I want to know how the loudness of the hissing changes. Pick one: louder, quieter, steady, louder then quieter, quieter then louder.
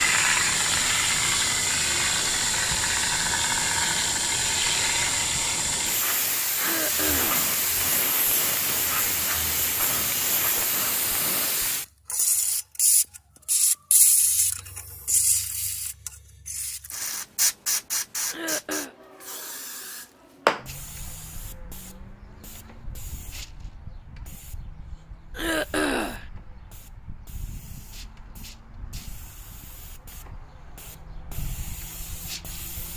quieter.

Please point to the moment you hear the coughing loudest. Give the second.
26 s.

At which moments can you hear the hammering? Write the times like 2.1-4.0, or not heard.
6.5-11.7.